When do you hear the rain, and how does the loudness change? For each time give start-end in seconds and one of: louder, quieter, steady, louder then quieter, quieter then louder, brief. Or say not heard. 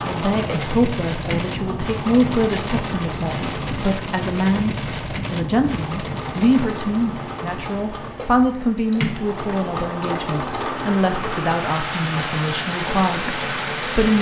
0.0-14.1 quieter then louder.